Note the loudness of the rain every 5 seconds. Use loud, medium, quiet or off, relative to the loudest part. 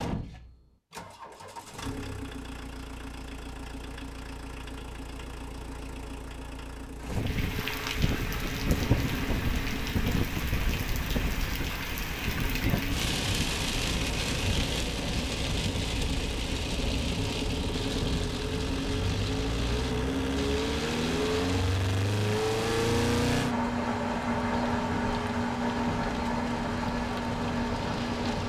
off, loud, loud, loud, medium, medium.